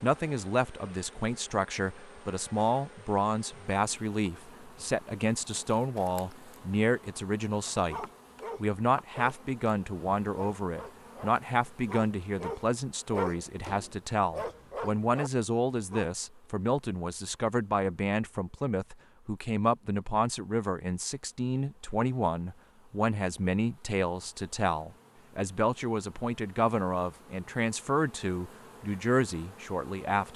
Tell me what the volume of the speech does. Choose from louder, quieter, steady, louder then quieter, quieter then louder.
steady.